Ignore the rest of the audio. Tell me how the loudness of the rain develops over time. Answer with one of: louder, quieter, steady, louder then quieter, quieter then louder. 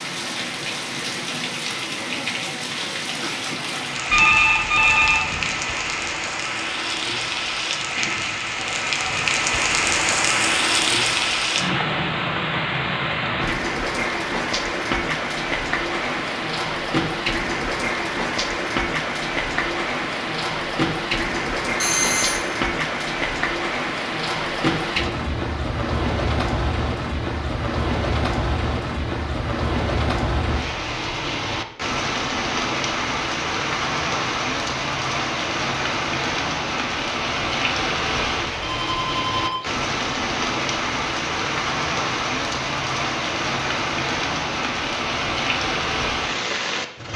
steady.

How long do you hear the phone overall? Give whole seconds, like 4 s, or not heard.
3 s.